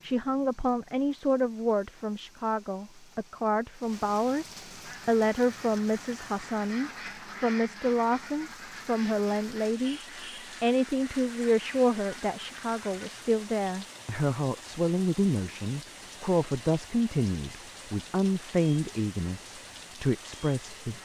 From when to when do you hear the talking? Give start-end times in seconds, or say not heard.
0.0-10.0, 10.6-21.0.